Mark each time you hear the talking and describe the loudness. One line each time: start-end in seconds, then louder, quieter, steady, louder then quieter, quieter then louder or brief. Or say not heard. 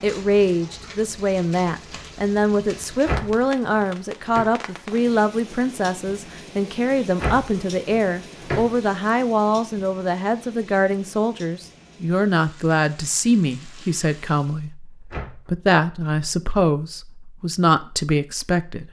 0.0-18.8 steady.